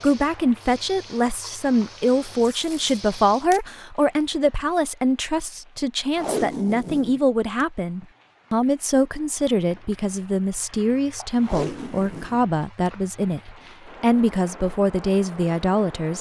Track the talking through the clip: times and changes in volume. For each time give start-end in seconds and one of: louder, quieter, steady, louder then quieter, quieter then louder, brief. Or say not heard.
0.0-16.1 steady.